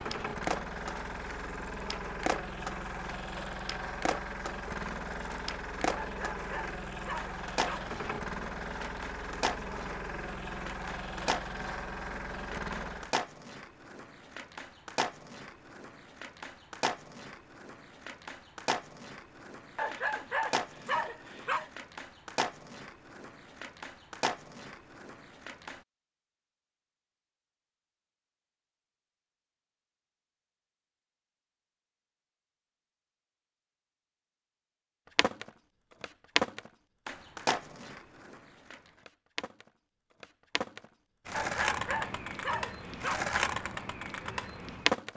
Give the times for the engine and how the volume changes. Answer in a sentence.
You can hear the engine from 0.0 to 13.2 s, at a steady volume.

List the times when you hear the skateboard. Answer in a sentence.
You can hear the skateboard from 0.1 to 25.8 s and from 35.1 to 45.1 s.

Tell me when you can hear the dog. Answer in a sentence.
The dog can be heard from 6.0 to 8.0 s, from 19.8 to 21.7 s and from 41.3 to 43.3 s.